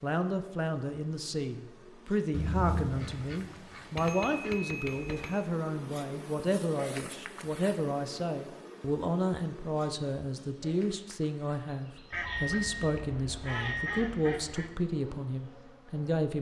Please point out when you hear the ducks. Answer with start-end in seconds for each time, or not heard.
2.3-4.6, 12.1-14.7.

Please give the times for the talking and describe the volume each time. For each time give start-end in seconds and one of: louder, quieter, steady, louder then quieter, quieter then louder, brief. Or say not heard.
0.0-16.3 steady.